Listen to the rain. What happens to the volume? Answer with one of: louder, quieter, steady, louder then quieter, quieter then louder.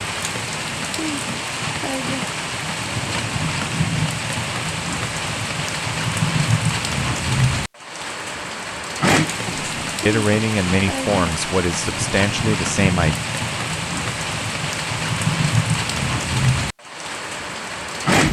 steady.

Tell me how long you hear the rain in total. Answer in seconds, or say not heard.
18 s.